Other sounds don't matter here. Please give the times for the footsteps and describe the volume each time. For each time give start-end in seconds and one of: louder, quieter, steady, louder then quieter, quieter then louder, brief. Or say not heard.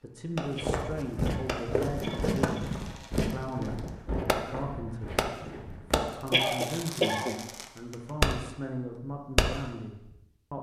0.5-6.0 quieter.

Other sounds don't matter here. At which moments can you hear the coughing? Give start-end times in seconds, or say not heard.
0.6-2.6, 6.3-7.3.